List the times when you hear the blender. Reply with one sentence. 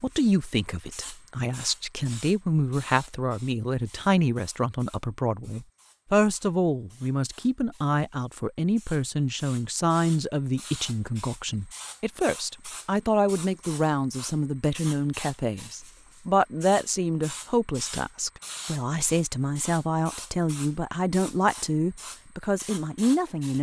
You can't hear the blender here.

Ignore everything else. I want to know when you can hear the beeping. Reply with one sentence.
The beeping can't be heard in this clip.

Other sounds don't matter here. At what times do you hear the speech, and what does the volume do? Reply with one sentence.
The speech can be heard from 0.0 to 23.5 s, at a steady volume.